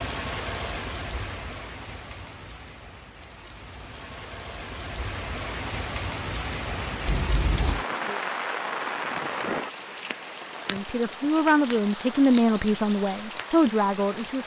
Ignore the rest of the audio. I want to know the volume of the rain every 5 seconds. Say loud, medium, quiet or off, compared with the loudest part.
medium, loud, loud.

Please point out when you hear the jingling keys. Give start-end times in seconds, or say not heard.
7.0-7.8.